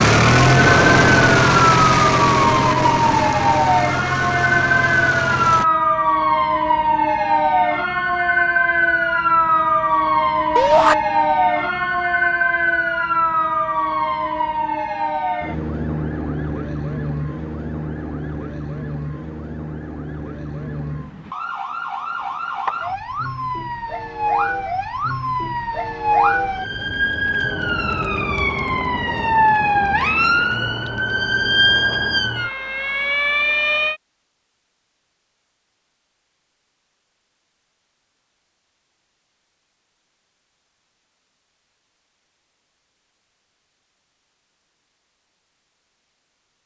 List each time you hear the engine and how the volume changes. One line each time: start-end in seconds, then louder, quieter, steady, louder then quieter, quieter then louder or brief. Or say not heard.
0.0-5.7 quieter.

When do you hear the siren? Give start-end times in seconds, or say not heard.
0.1-34.0.